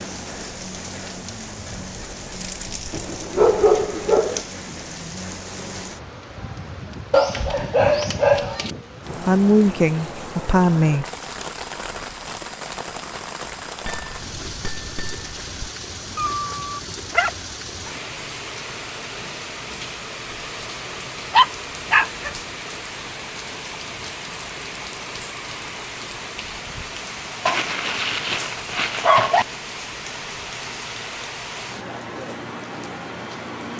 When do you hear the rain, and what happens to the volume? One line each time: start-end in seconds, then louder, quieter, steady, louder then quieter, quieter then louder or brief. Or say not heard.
0.0-33.7 steady.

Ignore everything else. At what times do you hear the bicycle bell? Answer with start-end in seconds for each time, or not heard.
13.8-15.7.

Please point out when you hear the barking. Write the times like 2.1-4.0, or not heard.
2.9-4.5, 7.1-8.8, 16.1-17.9, 21.3-22.3, 27.4-29.4.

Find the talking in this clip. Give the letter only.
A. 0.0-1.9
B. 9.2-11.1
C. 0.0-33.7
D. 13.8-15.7
B.